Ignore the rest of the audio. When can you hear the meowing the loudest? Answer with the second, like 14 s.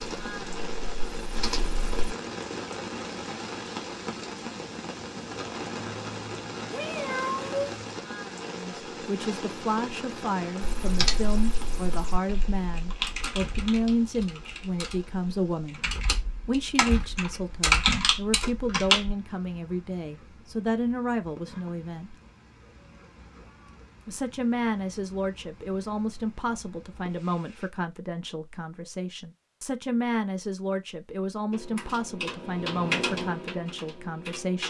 7 s.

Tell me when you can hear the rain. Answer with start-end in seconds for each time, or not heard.
0.0-27.7.